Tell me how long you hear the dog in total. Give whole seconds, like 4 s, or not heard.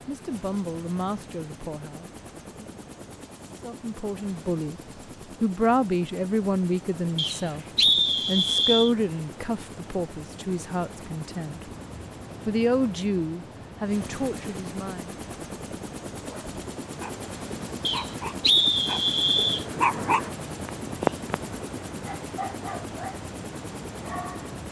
7 s.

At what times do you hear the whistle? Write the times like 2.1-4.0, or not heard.
7.2-8.9, 17.9-19.6.